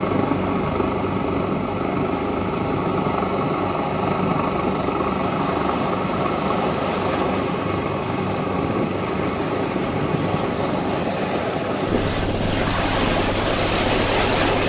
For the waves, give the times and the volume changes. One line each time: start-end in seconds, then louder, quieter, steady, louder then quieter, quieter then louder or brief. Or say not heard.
0.0-14.6 louder.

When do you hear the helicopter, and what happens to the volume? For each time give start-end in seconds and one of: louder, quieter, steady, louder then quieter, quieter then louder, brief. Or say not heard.
0.0-14.6 quieter.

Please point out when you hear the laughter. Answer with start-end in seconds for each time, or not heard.
not heard.